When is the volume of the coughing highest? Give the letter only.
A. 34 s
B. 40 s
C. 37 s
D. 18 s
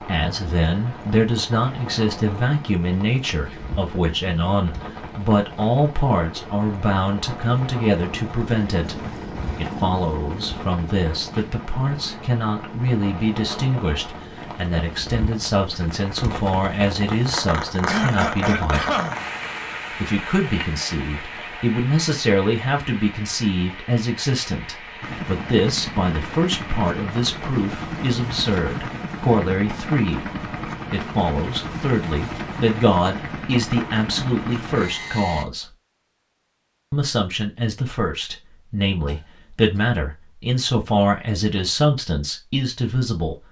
D.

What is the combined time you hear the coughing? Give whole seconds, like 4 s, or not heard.
2 s.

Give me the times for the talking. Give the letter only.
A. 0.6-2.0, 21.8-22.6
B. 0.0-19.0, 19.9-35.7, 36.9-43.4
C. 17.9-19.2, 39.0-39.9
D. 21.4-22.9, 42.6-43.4
B.